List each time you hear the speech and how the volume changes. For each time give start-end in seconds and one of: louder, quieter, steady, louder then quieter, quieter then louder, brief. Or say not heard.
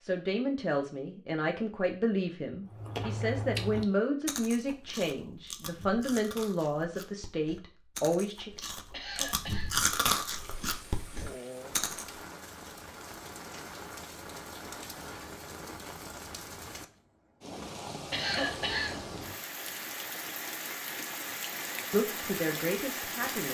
0.0-8.5 steady
21.9-23.5 brief.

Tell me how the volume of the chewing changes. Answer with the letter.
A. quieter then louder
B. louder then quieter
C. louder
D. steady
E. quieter
A.